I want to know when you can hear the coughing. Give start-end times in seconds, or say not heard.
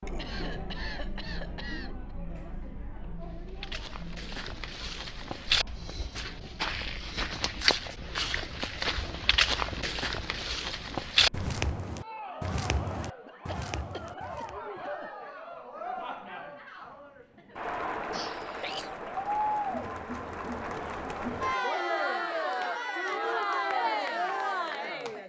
0.1-2.1, 13.2-15.1, 18.1-19.0.